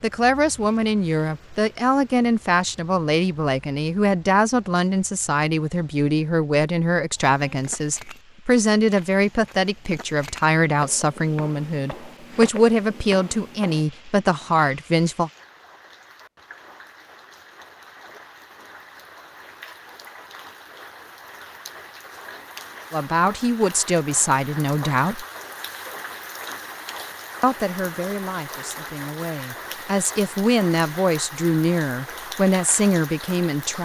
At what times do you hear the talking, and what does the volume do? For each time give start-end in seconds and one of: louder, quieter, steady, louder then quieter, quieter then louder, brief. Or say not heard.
0.0-15.3 steady
22.9-25.2 brief
27.4-33.8 louder.